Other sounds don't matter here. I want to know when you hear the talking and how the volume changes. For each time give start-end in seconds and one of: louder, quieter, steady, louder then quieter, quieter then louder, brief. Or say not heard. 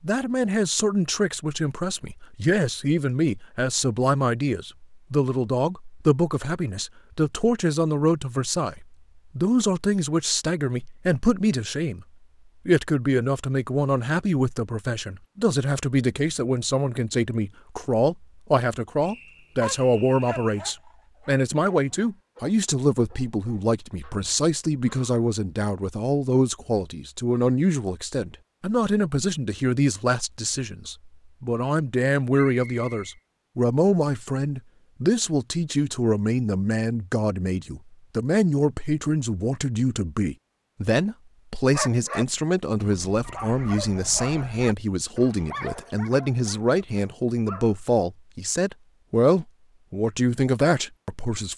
0.0-12.1 steady
12.7-51.5 steady.